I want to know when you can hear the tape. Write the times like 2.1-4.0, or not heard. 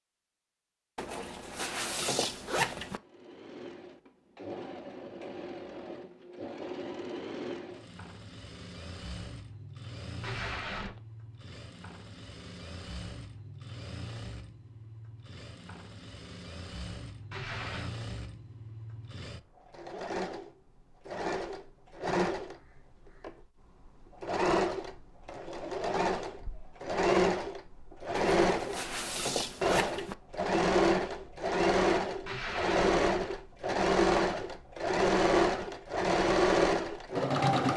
10.2-11.0, 17.3-17.9, 32.2-33.4.